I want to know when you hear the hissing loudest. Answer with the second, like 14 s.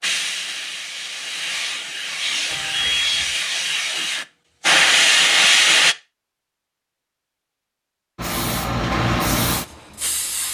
5 s.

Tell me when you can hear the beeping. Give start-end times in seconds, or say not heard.
2.5-3.4.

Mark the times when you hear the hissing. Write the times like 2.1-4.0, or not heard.
0.0-6.0, 8.2-10.4.